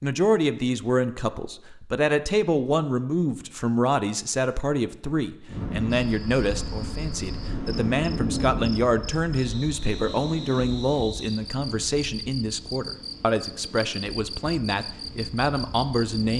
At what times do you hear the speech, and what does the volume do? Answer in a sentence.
The speech can be heard from 0.0 to 16.3 s, at a steady volume.